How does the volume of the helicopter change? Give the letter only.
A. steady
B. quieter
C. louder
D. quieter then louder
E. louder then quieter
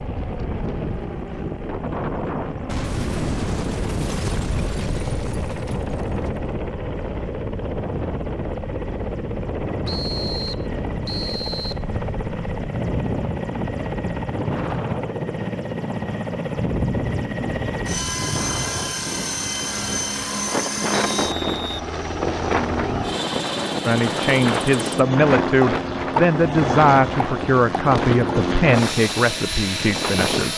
C.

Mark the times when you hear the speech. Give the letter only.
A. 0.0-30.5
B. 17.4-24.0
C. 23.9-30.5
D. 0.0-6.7
C.